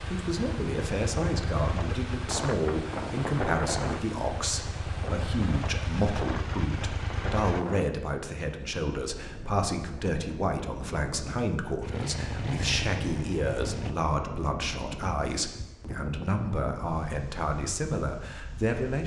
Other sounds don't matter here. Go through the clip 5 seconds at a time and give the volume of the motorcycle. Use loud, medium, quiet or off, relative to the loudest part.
loud, loud, loud, off.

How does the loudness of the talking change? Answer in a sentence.
The volume of the talking stays about the same.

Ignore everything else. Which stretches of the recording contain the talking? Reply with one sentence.
The talking can be heard from 0.1 to 19.0 s.